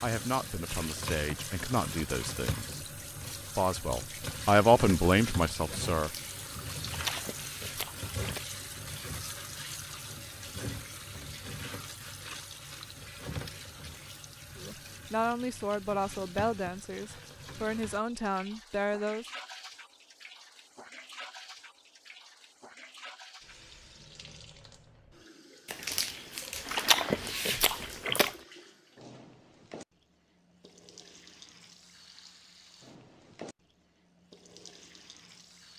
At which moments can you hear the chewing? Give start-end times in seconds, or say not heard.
6.0-8.4, 25.6-28.4.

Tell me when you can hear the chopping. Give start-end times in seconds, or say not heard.
not heard.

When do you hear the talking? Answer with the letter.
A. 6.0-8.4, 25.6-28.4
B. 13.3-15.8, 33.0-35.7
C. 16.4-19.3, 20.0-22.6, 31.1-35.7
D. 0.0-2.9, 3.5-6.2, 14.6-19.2
D.